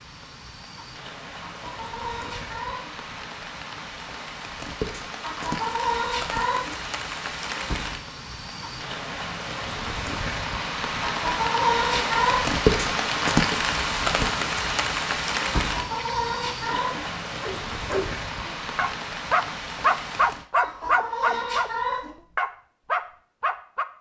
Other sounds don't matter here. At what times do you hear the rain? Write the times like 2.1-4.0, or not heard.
0.0-20.4.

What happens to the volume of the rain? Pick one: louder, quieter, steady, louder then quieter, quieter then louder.
louder then quieter.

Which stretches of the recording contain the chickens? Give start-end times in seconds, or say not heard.
1.4-3.0, 5.2-6.8, 11.1-12.6, 15.7-17.1, 20.6-22.1.